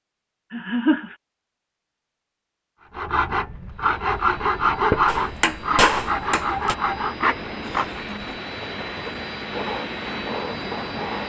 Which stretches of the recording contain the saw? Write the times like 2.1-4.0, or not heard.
2.8-11.2.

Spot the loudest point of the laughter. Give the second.
1 s.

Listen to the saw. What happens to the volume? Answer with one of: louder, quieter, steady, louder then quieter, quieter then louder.
quieter.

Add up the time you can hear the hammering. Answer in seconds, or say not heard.
2 s.